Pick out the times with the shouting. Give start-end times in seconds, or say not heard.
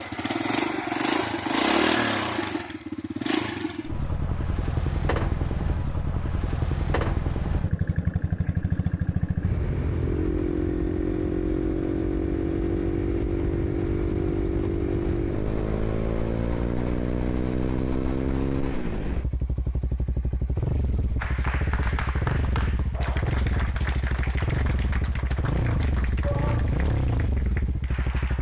26.2-26.8.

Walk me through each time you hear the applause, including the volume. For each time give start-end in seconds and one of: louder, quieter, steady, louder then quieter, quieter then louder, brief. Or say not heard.
21.1-28.3 quieter.